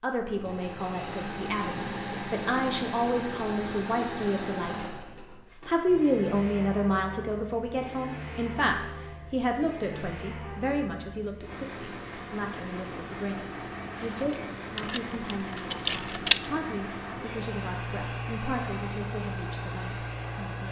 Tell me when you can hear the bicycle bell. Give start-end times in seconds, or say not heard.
not heard.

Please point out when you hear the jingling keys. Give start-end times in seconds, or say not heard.
13.9-16.6.